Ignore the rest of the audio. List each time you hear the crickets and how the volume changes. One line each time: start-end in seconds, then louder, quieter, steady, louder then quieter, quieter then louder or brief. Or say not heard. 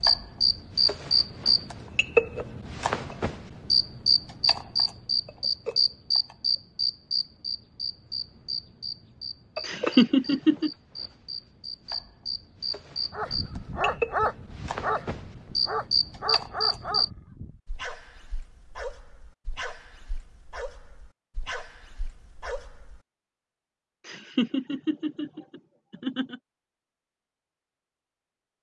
0.0-17.1 quieter then louder.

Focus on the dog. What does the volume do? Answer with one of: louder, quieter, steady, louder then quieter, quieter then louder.
quieter.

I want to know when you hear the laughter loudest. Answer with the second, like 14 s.
10 s.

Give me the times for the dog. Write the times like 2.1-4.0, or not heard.
13.1-23.0.